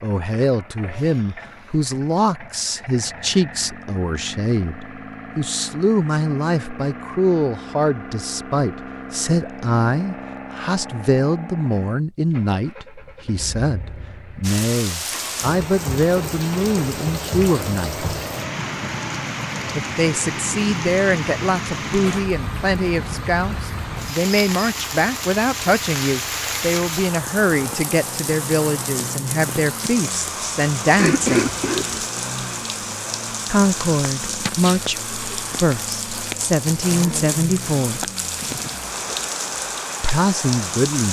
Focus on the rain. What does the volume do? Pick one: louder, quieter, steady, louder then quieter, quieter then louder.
steady.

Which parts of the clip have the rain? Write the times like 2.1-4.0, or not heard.
14.4-41.0.